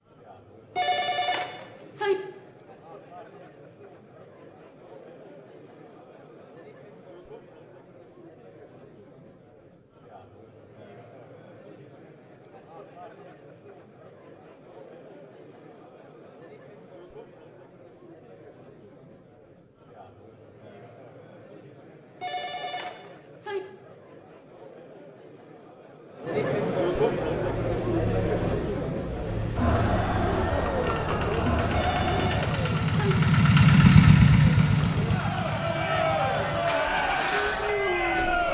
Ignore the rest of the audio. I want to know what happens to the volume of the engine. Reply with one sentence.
The volume of the engine goes up, then down.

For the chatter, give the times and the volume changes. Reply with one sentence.
You can hear the chatter from 0.0 to 38.4 s, getting louder.